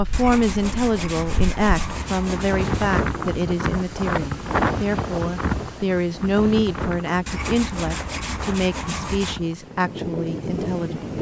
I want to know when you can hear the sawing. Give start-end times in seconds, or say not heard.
0.1-3.0, 7.2-9.4.